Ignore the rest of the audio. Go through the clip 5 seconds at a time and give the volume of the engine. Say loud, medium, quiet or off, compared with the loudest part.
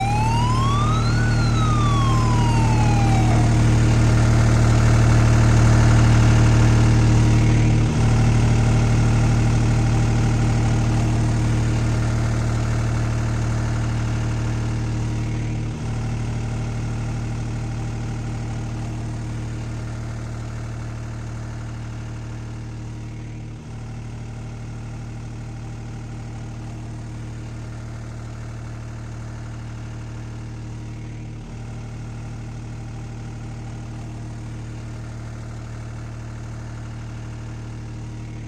loud, loud, medium, medium, quiet, quiet, quiet, quiet.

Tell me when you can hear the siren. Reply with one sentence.
You can hear the siren from 0.0 to 3.5 s.